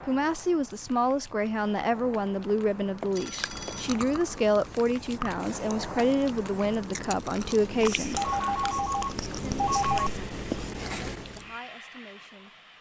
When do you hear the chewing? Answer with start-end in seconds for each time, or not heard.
3.1-11.5.